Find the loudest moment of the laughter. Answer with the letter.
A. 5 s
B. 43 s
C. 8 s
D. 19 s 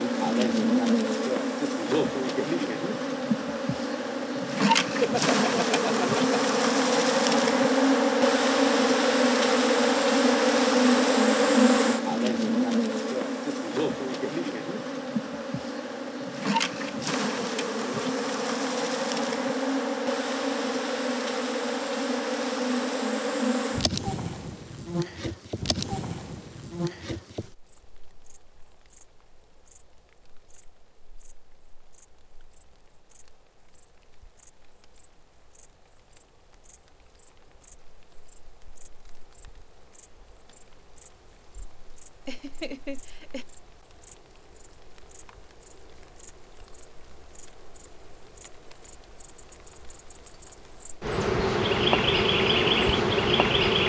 A.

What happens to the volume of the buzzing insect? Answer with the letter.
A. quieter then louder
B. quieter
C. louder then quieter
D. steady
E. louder
A.